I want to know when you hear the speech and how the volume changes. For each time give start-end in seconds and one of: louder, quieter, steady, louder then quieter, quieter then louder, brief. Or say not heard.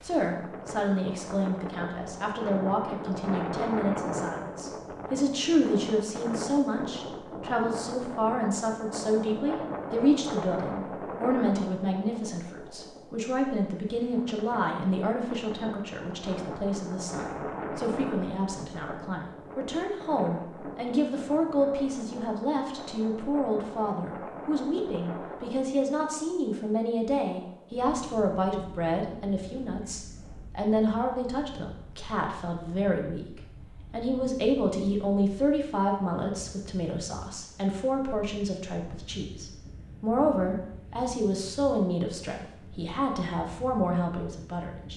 0.0-44.9 steady.